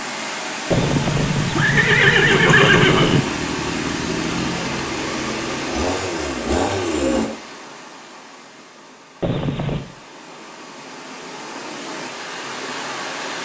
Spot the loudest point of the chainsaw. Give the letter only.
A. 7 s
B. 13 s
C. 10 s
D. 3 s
A.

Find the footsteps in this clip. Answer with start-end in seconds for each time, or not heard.
not heard.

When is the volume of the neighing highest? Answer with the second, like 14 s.
3 s.